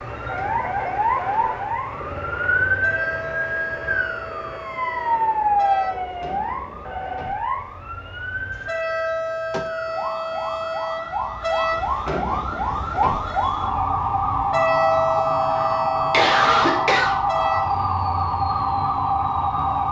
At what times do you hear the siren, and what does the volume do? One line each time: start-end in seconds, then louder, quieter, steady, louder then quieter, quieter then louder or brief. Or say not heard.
0.0-19.8 quieter then louder.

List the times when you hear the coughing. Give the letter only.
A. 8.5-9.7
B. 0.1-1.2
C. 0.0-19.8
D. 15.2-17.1
D.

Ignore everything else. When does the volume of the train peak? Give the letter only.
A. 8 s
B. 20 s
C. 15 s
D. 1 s
C.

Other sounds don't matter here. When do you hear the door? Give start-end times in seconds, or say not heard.
8.5-9.7.